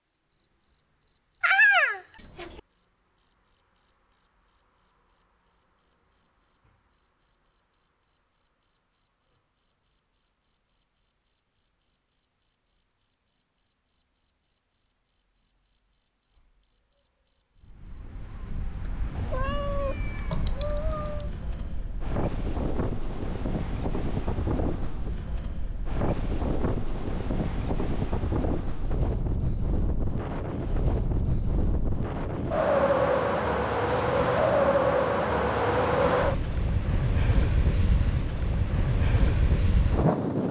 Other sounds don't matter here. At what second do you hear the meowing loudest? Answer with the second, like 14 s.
2 s.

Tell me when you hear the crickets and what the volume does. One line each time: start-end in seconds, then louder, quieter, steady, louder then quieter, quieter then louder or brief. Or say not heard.
0.0-40.4 steady.